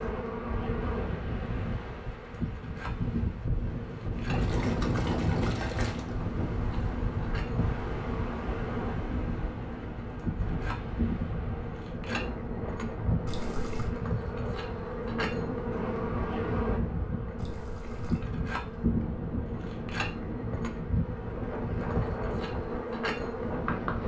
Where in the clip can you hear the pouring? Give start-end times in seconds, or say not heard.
4.3-6.2, 13.2-13.9, 17.4-18.2.